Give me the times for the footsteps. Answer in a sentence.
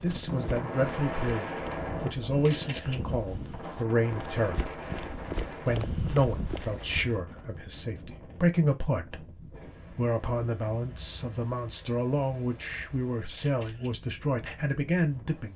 The footsteps can be heard from 0.0 to 7.1 s.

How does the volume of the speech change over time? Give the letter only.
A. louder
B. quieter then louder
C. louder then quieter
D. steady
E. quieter
D.